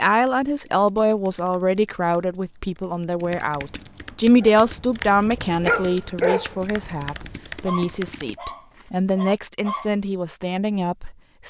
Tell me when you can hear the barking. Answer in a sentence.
You can hear the barking from 4.4 to 9.9 s.